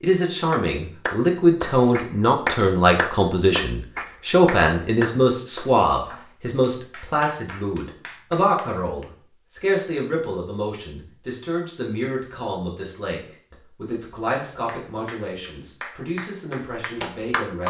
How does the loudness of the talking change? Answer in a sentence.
The loudness of the talking goes down.